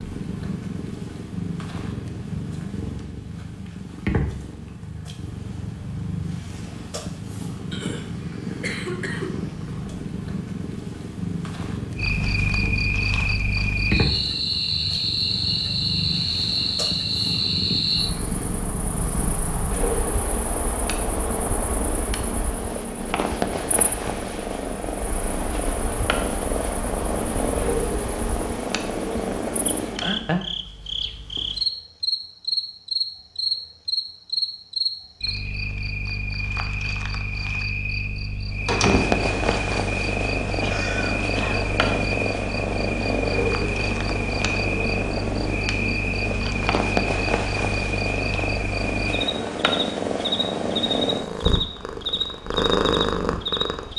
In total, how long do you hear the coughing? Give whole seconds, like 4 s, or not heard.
3 s.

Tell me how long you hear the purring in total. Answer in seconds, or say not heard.
46 s.